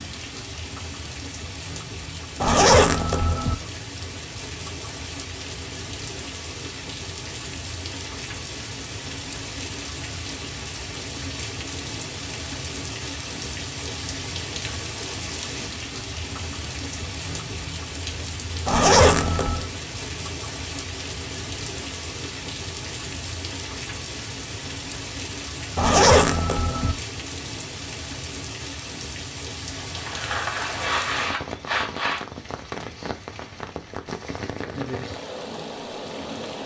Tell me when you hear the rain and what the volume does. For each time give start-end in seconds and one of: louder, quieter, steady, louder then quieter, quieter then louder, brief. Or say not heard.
0.0-36.6 steady.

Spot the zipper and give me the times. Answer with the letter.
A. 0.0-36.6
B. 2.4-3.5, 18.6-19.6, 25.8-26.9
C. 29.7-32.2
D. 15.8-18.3
B.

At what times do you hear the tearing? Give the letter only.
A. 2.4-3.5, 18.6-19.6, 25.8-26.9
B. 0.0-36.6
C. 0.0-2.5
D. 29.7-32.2
D.